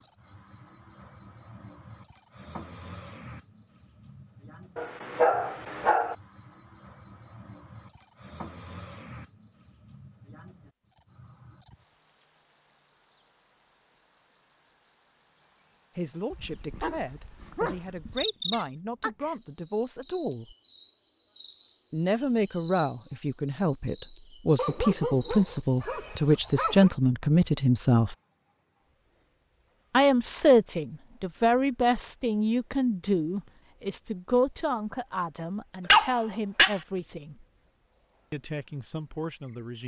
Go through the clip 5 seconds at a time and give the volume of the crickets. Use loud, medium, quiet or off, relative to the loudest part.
loud, loud, loud, loud, loud, medium, quiet, quiet.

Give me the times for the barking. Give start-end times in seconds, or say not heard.
4.8-6.2, 16.3-18.2, 24.6-26.9, 35.8-36.8.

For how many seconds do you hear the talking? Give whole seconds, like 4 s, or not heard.
20 s.